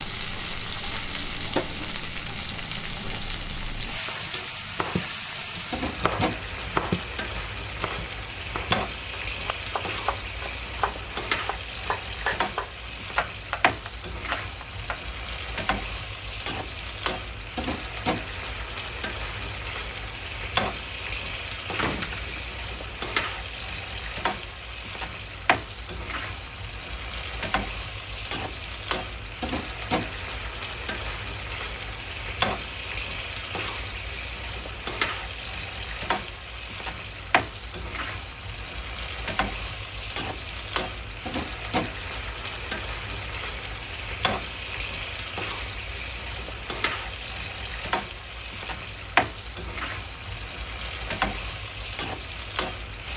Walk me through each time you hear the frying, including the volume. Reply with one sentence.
The frying can be heard from 0.0 to 53.1 s, at a steady volume.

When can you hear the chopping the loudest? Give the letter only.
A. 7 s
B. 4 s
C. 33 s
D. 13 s
A.